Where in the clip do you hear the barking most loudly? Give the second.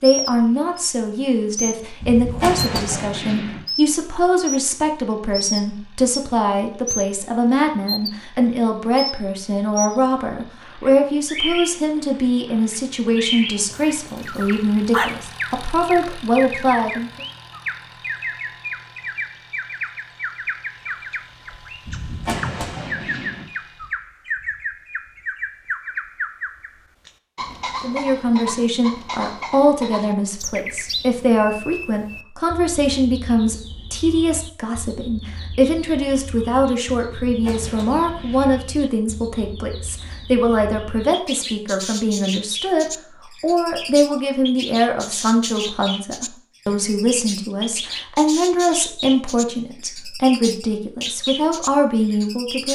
15 s.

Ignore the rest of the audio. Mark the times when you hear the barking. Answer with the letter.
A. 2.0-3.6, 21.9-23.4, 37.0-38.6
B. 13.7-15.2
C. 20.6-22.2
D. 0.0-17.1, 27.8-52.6
B.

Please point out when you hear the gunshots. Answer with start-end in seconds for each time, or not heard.
2.0-3.6, 21.9-23.4, 37.0-38.6.